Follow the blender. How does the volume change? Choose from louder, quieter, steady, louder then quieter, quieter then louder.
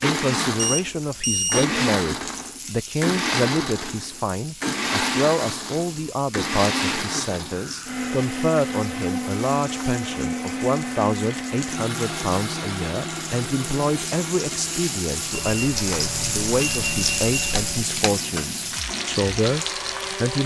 quieter.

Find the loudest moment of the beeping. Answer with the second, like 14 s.
1 s.